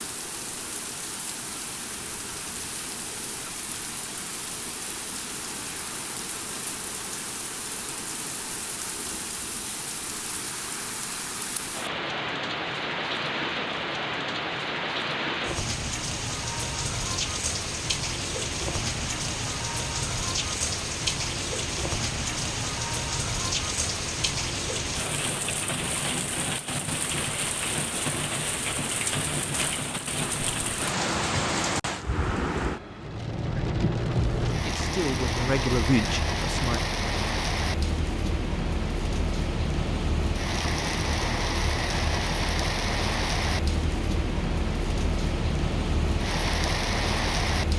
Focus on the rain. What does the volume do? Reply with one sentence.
The volume of the rain goes up.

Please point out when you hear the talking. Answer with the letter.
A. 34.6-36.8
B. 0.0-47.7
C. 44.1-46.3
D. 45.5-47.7
A.